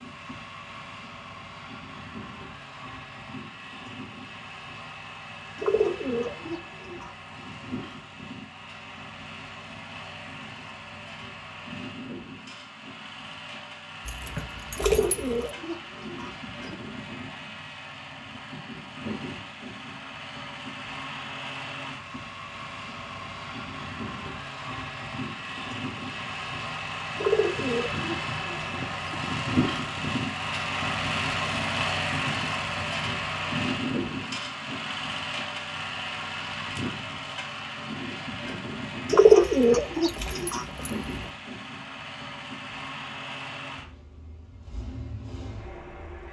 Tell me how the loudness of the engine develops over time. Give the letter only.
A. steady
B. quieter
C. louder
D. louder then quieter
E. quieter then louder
D.